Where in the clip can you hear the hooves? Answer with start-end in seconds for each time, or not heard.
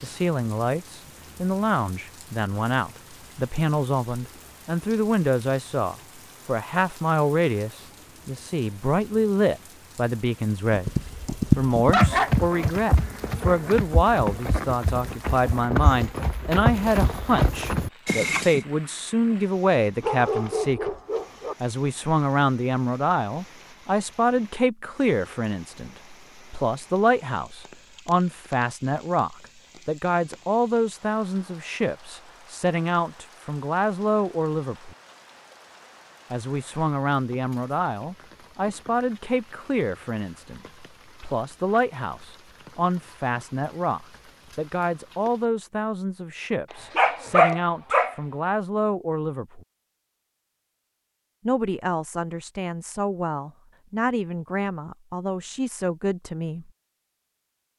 10.7-18.6.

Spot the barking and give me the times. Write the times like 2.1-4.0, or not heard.
11.9-13.7, 20.0-21.6, 47.0-48.1.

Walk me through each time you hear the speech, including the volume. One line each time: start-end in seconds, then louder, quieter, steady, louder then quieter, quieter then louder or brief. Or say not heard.
0.0-10.9 steady
11.6-20.9 steady
21.6-35.0 steady
36.3-49.6 steady
51.5-56.7 steady.